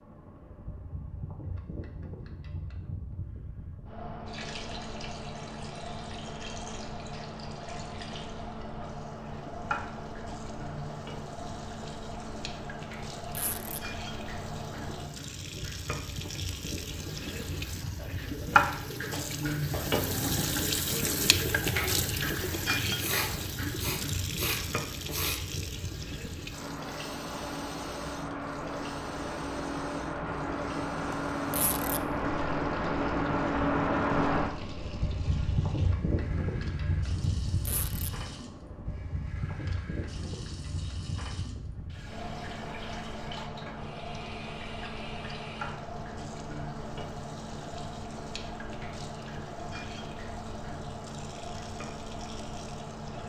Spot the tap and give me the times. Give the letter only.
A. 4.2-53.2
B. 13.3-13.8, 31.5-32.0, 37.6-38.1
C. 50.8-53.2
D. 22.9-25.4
A.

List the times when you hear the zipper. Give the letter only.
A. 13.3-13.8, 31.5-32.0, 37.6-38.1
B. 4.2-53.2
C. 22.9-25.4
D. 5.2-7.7
A.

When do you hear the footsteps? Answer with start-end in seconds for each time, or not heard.
not heard.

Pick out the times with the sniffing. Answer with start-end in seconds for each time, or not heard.
22.9-25.4.